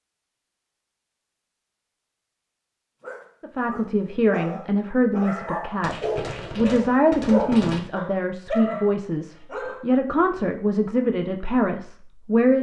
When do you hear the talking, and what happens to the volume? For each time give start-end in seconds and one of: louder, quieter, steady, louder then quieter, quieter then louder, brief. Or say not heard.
3.4-12.5 steady.